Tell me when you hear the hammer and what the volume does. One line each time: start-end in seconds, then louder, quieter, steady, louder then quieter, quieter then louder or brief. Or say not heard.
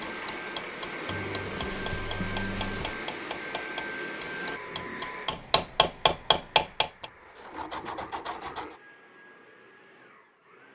0.0-7.0 louder.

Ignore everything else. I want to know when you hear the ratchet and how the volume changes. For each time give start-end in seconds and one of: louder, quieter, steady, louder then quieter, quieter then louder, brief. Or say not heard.
not heard.